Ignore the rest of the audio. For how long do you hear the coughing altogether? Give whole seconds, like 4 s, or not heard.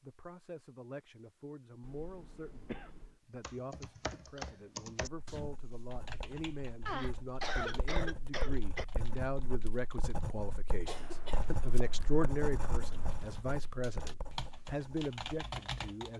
6 s.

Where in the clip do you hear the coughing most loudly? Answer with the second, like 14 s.
8 s.